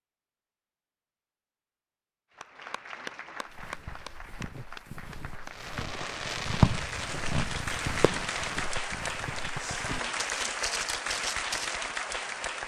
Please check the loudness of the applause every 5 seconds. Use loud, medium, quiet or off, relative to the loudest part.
medium, loud, loud.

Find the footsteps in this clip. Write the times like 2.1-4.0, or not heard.
3.5-11.8.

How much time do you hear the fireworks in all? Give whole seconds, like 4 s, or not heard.
3 s.